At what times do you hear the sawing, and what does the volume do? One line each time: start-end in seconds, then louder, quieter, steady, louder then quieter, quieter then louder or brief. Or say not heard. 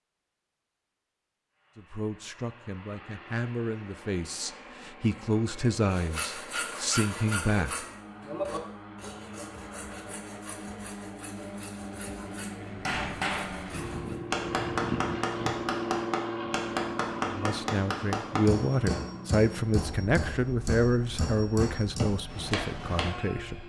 5.8-14.2 quieter.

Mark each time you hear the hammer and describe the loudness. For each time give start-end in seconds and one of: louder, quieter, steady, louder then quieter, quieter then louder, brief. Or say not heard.
12.7-23.2 steady.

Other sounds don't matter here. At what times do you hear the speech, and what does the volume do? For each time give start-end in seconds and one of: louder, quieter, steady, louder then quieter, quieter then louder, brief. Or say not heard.
1.8-7.8 louder
17.2-23.6 quieter.